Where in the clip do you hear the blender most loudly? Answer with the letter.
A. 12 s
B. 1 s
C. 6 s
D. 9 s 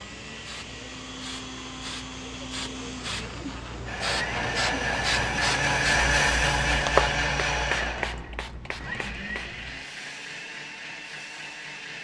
C.